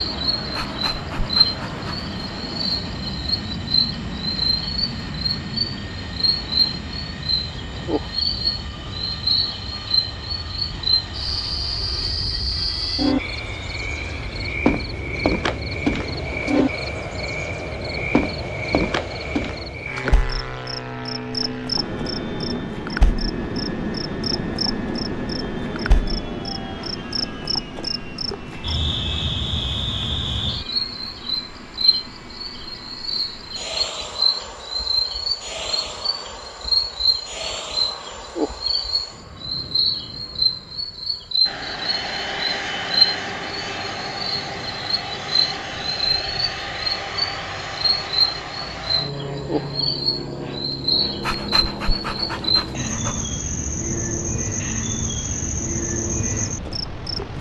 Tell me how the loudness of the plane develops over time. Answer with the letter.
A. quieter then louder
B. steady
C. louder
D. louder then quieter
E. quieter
B.